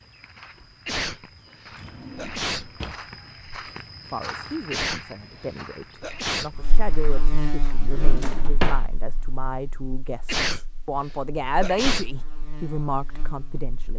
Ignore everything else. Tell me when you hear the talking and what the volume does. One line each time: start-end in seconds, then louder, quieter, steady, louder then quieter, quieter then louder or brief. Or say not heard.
4.1-13.9 louder.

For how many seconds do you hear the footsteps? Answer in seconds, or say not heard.
8 s.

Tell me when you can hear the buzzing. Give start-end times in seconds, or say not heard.
6.5-13.9.